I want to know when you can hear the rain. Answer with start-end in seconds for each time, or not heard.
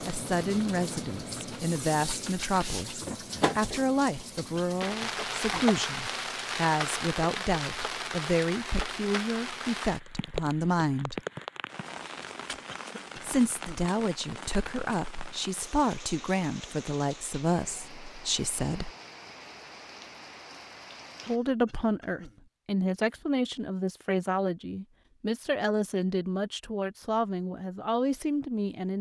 0.0-21.4.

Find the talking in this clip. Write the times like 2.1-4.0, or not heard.
0.0-11.2, 13.2-18.9, 21.2-28.9.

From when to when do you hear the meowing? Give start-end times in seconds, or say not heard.
not heard.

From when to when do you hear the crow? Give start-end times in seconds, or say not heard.
not heard.